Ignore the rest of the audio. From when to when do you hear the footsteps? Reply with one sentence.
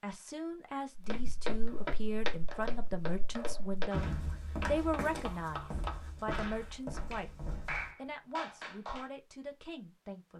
You can hear the footsteps from 0.9 to 8.0 s.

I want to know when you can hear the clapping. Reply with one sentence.
The clapping can be heard from 1.6 to 9.1 s.